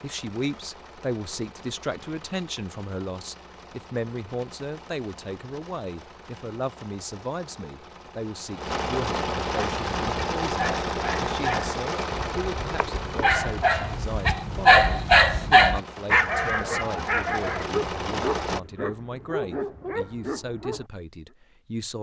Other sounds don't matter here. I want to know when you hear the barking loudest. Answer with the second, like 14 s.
15 s.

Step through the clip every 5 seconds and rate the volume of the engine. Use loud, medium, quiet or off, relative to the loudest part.
quiet, loud, loud, loud, off.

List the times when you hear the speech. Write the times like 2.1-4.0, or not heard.
0.0-21.9.